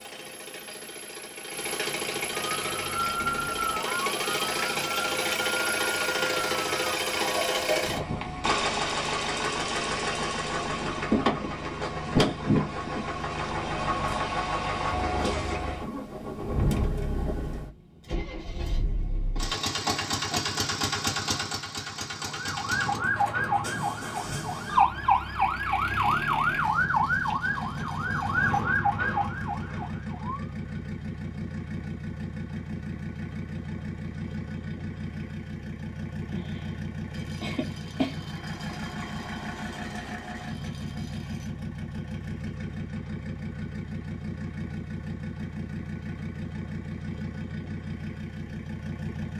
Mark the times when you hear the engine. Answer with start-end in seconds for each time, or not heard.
0.0-49.3.